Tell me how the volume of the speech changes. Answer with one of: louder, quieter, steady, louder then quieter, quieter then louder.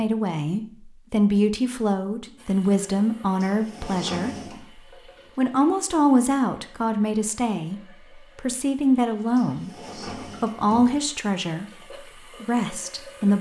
steady.